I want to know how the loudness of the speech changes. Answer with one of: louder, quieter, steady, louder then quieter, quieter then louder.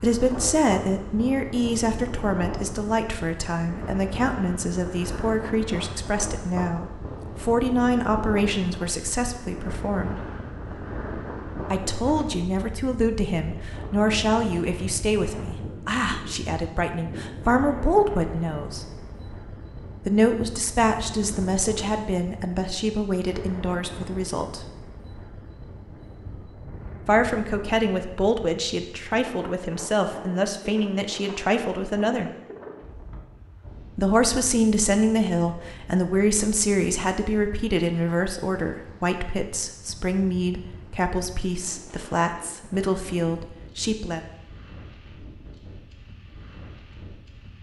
steady.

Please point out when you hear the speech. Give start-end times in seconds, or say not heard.
0.0-10.2, 11.7-18.9, 20.1-24.6, 27.1-32.3, 34.0-44.2.